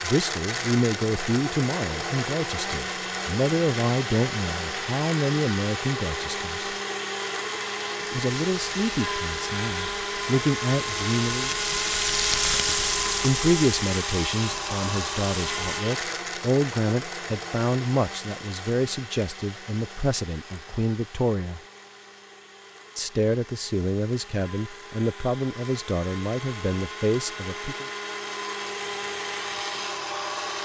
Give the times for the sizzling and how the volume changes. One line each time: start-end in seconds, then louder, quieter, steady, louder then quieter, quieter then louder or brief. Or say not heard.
8.4-15.8 louder then quieter.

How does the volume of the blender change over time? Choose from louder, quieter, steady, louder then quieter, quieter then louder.
quieter then louder.